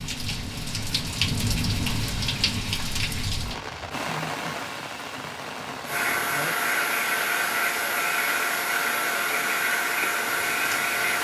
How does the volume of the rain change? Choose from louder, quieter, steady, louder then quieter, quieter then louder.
quieter.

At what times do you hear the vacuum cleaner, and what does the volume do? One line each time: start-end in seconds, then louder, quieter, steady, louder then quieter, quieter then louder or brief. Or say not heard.
5.8-11.1 steady.